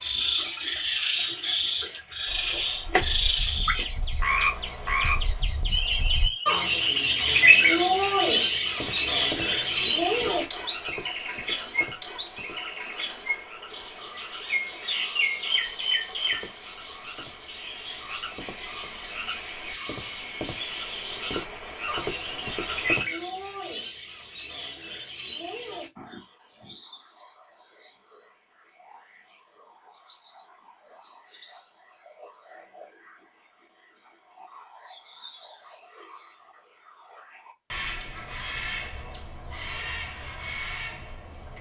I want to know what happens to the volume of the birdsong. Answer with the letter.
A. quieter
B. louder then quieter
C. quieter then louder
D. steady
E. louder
A.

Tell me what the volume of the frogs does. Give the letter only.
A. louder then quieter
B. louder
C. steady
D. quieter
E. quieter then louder
E.